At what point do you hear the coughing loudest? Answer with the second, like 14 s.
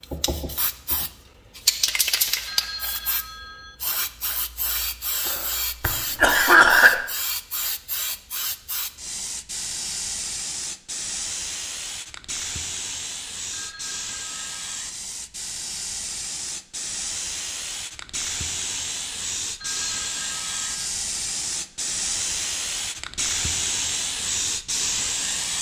7 s.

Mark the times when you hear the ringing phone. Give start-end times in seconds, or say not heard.
2.5-3.8, 13.5-14.8, 19.6-20.9.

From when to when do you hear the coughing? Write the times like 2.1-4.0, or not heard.
5.2-7.0.